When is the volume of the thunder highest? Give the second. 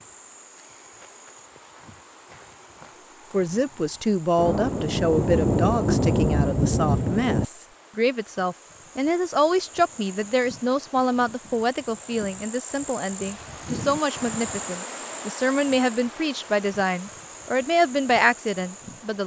6 s.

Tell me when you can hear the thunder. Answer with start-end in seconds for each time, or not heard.
4.3-7.5.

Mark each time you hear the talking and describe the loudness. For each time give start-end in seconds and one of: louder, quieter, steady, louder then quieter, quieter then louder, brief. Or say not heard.
3.3-19.2 steady.